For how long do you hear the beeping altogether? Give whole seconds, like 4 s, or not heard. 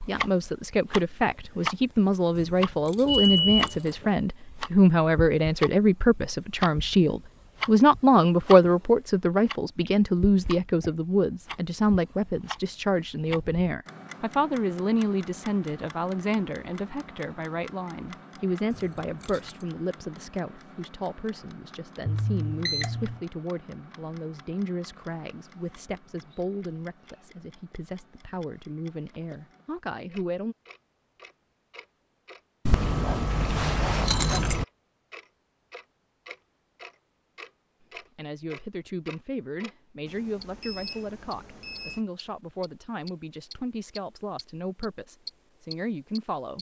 4 s.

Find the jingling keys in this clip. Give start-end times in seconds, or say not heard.
2.4-4.1, 18.7-19.6, 32.6-34.6.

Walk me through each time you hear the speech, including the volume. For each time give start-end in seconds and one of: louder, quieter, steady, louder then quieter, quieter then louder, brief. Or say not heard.
0.0-30.6 quieter
38.1-46.5 steady.